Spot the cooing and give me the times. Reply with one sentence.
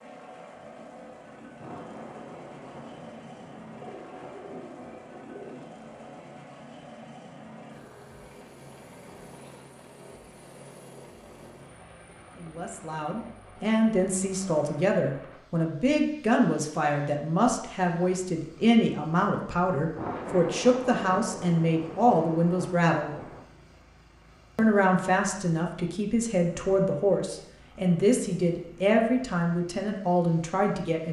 You can hear the cooing from 3.8 to 5.7 s.